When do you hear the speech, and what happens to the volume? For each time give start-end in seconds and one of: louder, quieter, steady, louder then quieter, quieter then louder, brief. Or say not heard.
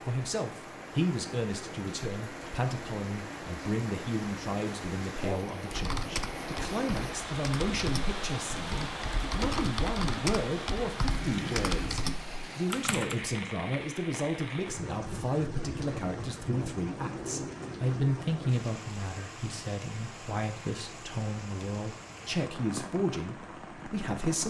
0.0-24.4 steady.